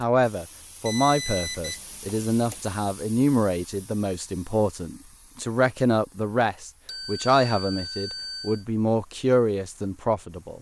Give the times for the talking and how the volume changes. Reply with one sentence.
You can hear the talking from 0.0 to 10.5 s, at a steady volume.